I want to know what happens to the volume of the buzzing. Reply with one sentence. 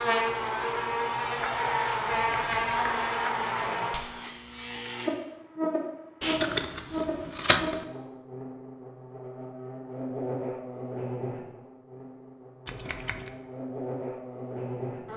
The volume of the buzzing goes down.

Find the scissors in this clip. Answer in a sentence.
You can hear the scissors from 2.1 to 3.0 s, from 6.2 to 7.8 s and from 12.7 to 13.3 s.